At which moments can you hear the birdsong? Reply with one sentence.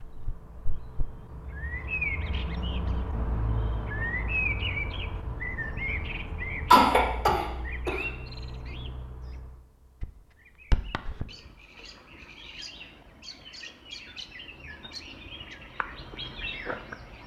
The birdsong can be heard from 0.0 to 17.2 s.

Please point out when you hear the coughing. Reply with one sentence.
The coughing can be heard from 6.7 to 8.1 s.